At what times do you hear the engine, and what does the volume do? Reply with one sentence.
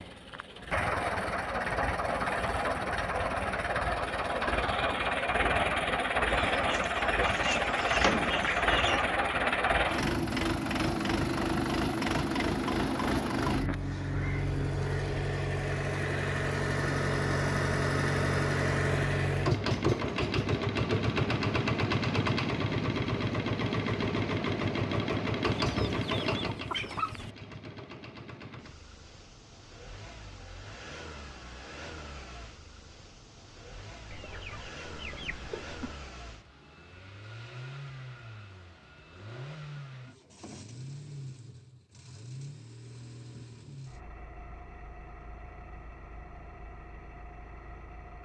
The engine can be heard from 0.0 to 48.2 s, getting quieter.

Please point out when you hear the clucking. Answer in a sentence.
The clucking can be heard from 6.3 to 9.0 s, from 25.6 to 27.4 s and from 34.1 to 36.0 s.